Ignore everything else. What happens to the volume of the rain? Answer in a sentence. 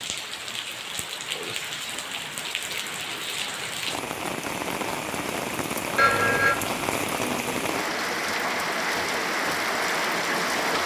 The loudness of the rain goes up.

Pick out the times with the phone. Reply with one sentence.
You can hear the phone from 6.0 to 6.8 s.